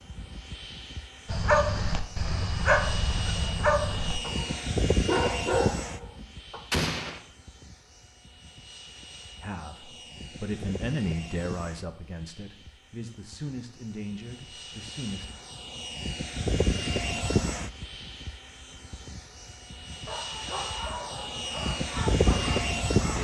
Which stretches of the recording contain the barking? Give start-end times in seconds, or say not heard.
1.2-6.6, 19.9-23.1.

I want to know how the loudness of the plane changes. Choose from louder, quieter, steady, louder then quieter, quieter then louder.
quieter then louder.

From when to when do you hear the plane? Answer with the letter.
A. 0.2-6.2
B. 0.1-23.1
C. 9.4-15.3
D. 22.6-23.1
B.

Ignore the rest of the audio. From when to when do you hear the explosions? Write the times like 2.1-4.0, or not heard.
6.7-7.2.